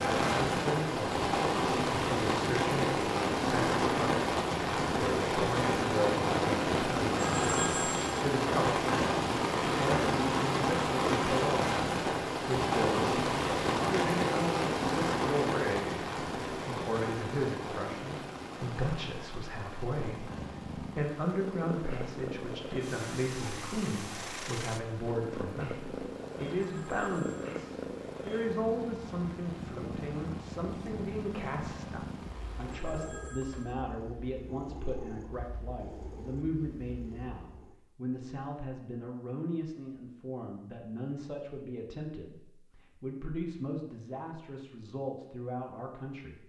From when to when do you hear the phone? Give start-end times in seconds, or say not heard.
7.3-8.2, 26.6-27.6, 32.7-33.8.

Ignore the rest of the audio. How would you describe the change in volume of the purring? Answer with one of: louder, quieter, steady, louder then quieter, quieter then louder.
quieter.